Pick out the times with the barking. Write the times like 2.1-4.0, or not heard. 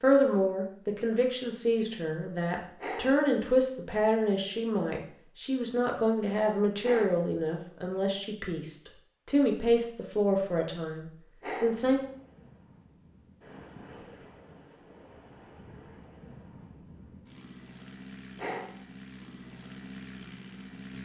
2.8-3.2, 6.8-7.2, 11.4-11.8, 18.4-18.8.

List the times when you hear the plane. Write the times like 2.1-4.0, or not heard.
11.7-20.9.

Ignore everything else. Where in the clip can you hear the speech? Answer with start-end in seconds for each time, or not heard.
0.0-12.0.